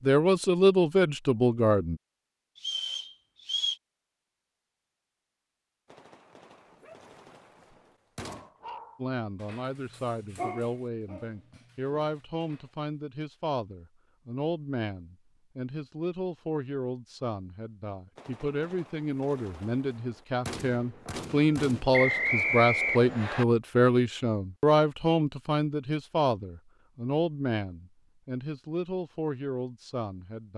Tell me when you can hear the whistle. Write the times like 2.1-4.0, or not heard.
2.5-3.8, 21.9-23.4.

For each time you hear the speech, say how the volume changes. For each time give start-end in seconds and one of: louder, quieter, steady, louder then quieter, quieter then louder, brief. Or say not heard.
0.0-2.0 brief
8.9-30.5 louder then quieter.